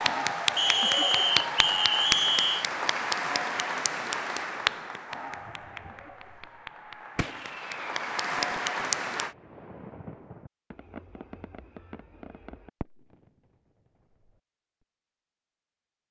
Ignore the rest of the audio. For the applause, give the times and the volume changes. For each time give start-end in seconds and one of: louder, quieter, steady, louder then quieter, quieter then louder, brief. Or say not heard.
0.0-9.3 quieter then louder.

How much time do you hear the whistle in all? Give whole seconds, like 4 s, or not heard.
2 s.